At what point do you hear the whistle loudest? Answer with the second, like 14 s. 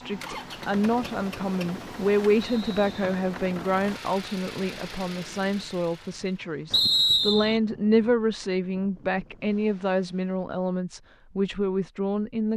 7 s.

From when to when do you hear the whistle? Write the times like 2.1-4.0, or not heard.
2.4-3.0, 6.7-7.6.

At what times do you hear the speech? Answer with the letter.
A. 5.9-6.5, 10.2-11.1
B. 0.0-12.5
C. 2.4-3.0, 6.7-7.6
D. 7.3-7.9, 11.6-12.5
B.